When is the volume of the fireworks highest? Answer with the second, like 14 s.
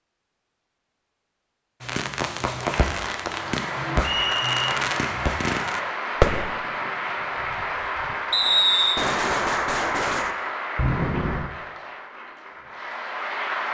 6 s.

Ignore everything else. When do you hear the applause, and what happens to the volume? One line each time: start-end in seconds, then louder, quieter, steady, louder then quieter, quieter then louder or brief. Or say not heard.
2.4-13.6 quieter.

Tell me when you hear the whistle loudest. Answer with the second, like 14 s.
9 s.